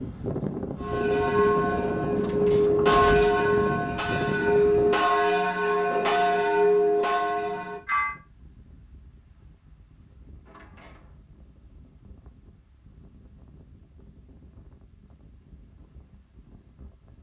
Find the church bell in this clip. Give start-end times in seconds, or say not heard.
0.8-8.2.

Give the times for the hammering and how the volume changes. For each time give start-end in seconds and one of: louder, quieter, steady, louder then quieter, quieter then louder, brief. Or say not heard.
not heard.